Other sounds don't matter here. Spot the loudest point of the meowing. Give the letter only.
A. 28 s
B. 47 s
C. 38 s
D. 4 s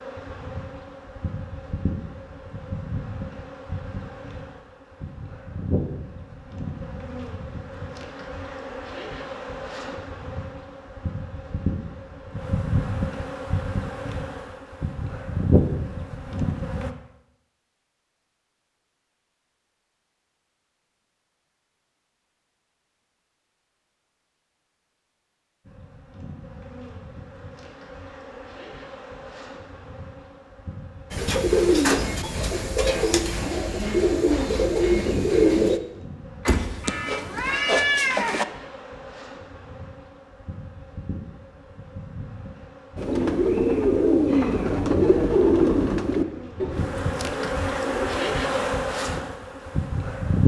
C.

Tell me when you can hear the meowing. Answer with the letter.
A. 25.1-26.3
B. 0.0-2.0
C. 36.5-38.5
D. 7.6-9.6
C.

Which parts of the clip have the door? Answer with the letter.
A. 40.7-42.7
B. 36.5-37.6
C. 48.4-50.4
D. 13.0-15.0
B.